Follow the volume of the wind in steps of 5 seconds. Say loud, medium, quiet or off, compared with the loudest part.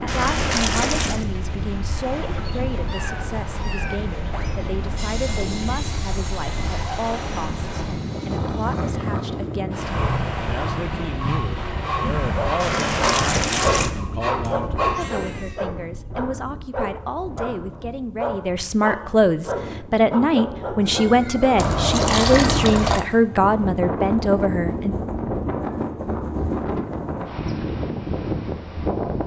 medium, loud, loud, quiet, loud, loud.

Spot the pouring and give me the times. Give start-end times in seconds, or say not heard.
0.1-1.2, 12.6-13.9, 21.6-23.1.